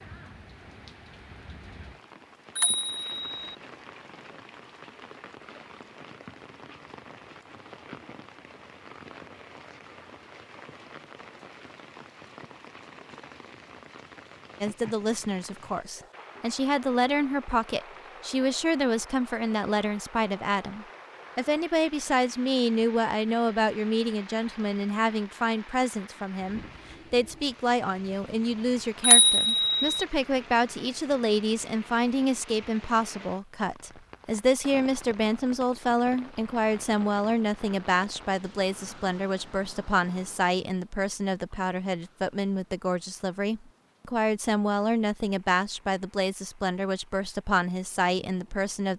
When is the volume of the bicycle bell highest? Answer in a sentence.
The loudest moment of the bicycle bell is at 29 seconds.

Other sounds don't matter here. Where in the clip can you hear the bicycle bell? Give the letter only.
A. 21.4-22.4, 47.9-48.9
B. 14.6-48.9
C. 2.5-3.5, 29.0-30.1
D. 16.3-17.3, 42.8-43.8
C.